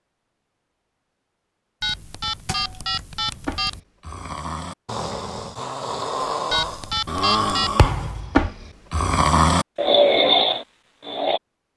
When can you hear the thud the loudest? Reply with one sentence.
The volume of the thud peaks at 8 seconds.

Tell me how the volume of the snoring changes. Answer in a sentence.
The volume of the snoring goes up.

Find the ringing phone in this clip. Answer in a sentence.
You can hear the ringing phone from 1.8 to 3.8 s and from 6.5 to 7.9 s.